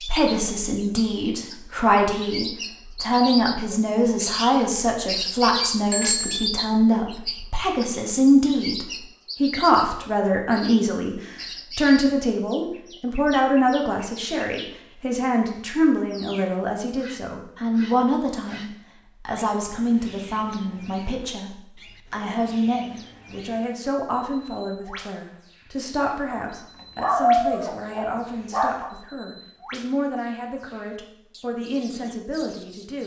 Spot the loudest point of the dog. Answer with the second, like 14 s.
27 s.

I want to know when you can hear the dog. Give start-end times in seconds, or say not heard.
26.3-28.9.